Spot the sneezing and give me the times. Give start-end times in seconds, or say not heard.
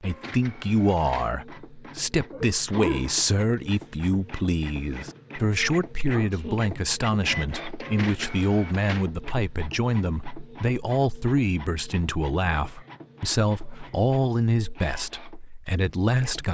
2.3-3.5, 5.7-6.7, 12.6-14.0.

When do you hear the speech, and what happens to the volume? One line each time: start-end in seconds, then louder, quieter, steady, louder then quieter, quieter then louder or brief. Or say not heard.
0.0-16.5 steady.